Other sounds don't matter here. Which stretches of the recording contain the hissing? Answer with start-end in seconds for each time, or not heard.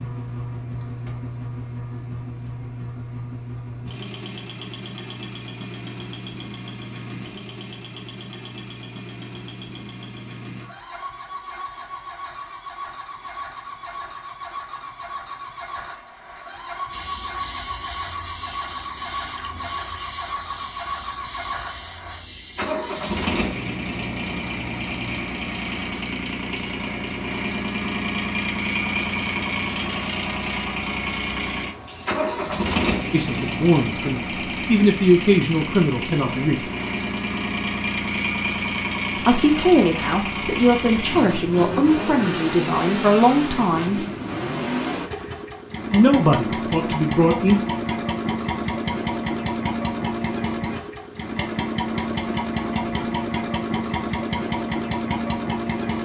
16.9-26.1, 28.8-33.7.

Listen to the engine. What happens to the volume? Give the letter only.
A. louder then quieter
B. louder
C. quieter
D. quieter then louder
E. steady
B.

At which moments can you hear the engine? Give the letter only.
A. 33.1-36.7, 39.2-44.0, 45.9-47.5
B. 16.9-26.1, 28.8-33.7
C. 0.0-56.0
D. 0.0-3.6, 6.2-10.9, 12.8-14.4
C.